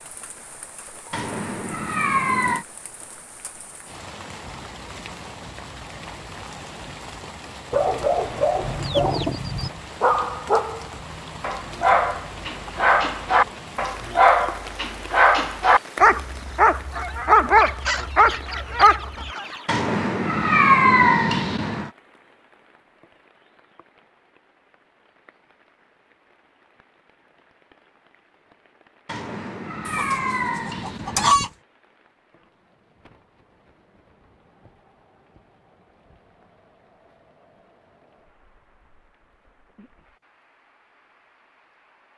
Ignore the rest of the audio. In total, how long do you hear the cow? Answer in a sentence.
You can't hear the cow here.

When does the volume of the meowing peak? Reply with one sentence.
The loudest moment of the meowing is at 21 seconds.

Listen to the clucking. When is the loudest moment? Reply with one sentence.
The volume of the clucking peaks at 31 seconds.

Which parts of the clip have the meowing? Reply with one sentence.
You can hear the meowing from 1.1 to 2.6 s, from 19.6 to 21.9 s and from 29.1 to 31.4 s.